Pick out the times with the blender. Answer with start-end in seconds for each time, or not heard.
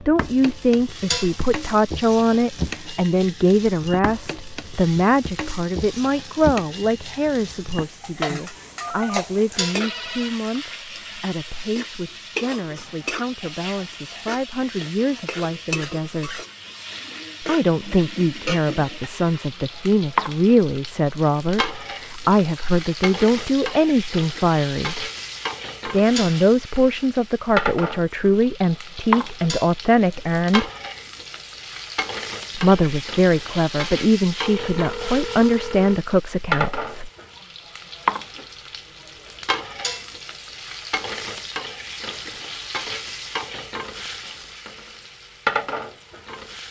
not heard.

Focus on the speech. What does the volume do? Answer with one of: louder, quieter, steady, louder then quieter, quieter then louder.
quieter then louder.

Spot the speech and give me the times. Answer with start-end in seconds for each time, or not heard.
0.0-16.4, 17.4-25.1, 25.9-30.7, 32.5-37.1.